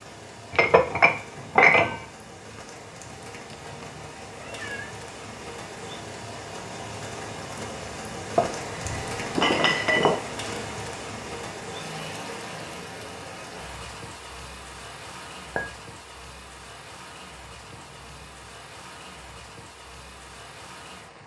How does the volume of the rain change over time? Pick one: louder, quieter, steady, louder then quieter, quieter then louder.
louder then quieter.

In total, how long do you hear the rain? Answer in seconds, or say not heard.
21 s.